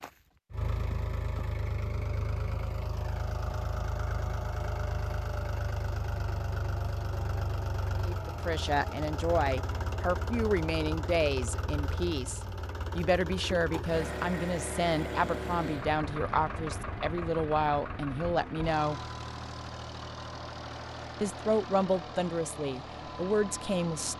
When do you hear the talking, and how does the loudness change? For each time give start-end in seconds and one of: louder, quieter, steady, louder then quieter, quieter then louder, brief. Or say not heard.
8.0-19.0 steady
21.2-24.1 brief.